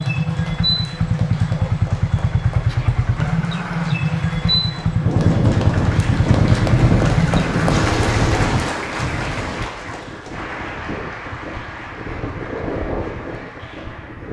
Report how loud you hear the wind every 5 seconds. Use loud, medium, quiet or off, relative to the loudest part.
off, loud, medium.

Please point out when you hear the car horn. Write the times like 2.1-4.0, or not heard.
not heard.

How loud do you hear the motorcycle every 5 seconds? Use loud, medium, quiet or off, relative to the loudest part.
loud, loud, off.